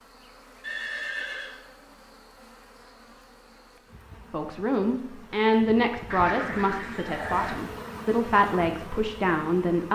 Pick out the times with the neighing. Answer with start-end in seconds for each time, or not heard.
0.6-1.6, 6.4-7.6.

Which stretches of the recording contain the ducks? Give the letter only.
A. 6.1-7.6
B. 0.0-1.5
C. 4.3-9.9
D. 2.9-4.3
A.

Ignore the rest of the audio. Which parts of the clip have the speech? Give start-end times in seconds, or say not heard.
4.3-9.9.